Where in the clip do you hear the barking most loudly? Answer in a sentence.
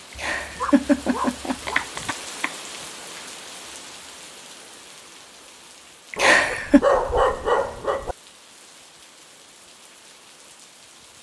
The loudest moment of the barking is at 7 seconds.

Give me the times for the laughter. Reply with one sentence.
You can hear the laughter from 0.1 to 2.5 s and from 6.1 to 6.8 s.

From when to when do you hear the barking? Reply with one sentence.
The barking can be heard from 0.1 to 1.9 s and from 6.2 to 8.2 s.